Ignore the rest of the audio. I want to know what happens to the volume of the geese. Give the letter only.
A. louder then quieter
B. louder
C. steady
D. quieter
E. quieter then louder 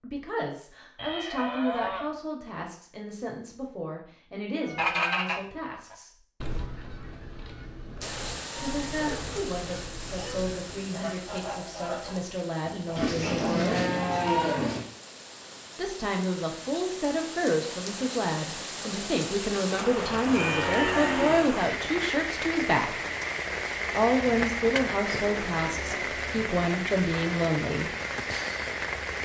E.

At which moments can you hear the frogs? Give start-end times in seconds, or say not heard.
not heard.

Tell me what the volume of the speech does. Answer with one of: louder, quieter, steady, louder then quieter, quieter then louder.
louder.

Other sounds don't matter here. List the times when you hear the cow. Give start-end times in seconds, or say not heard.
0.9-2.1, 7.8-9.4, 12.9-14.8, 19.9-21.5, 24.2-26.2.